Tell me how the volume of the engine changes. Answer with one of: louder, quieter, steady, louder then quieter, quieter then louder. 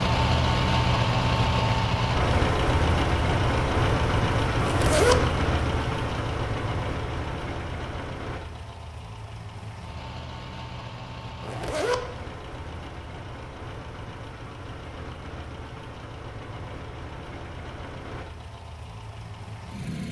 quieter.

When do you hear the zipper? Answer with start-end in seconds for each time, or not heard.
4.6-5.2, 11.4-12.0.